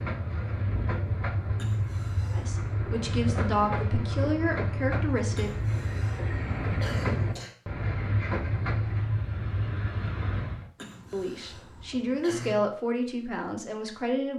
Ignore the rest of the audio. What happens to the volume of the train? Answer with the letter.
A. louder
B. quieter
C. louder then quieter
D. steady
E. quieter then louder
D.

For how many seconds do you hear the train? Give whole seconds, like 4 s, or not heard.
11 s.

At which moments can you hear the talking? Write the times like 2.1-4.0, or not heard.
2.3-5.6, 11.1-14.3.